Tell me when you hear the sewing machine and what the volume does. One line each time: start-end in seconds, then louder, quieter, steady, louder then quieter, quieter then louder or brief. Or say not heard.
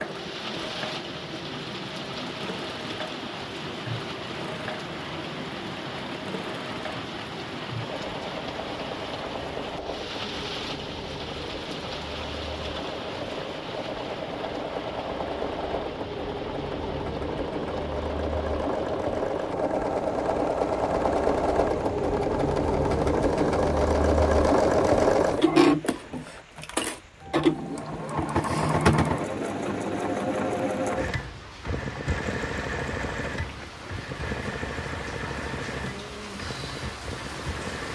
0.0-37.9 louder then quieter.